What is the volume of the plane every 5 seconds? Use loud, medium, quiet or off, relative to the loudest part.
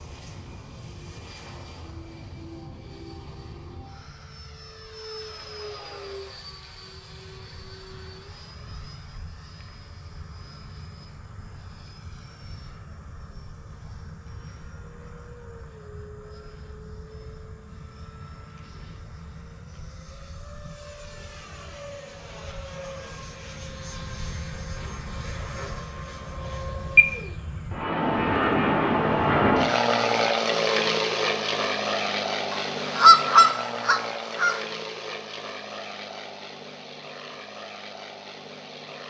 quiet, quiet, quiet, quiet, quiet, loud, loud, quiet.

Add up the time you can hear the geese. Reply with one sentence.
You can hear the geese for 2 seconds altogether.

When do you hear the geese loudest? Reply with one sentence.
The loudest moment of the geese is at 33 seconds.